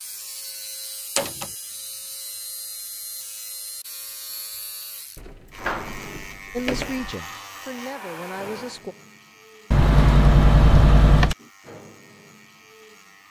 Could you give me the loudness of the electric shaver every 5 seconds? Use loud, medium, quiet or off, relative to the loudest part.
loud, loud, medium.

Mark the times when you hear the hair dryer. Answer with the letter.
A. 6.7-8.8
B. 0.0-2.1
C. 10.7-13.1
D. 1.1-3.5
A.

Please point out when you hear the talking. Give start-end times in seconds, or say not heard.
6.5-8.9.